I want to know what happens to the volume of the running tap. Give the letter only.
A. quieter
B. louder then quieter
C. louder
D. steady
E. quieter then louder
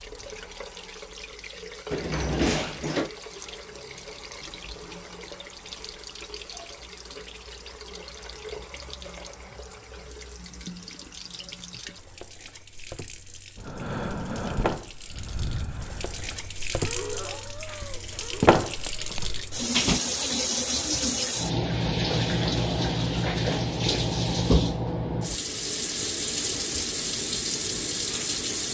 C.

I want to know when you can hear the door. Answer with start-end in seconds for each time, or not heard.
1.9-3.1, 18.9-20.0.